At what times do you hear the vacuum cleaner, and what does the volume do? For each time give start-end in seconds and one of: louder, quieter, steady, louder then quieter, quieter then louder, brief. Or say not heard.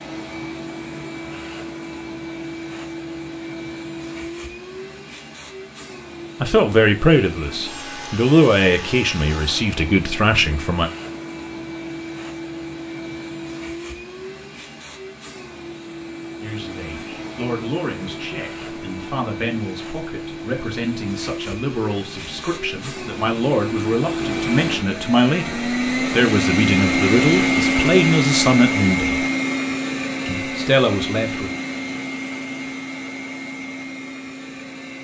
0.0-34.9 louder.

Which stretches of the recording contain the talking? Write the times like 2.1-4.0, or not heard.
6.4-10.9, 16.4-29.2, 30.2-31.5.